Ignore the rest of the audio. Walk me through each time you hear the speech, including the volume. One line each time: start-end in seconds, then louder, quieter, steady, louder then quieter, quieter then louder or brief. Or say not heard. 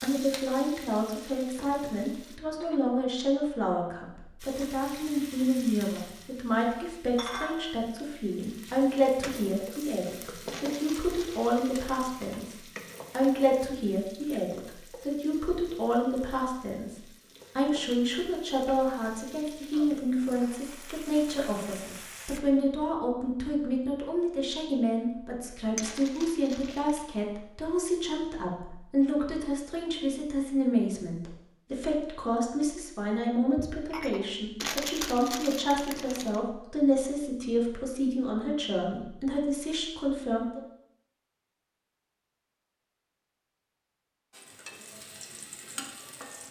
0.0-12.5 steady
13.1-40.6 steady.